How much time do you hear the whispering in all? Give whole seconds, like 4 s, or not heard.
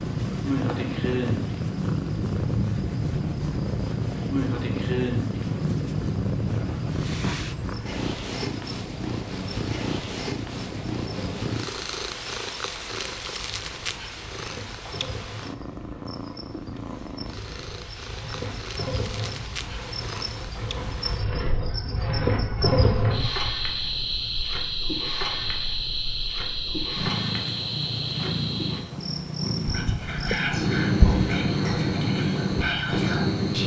4 s.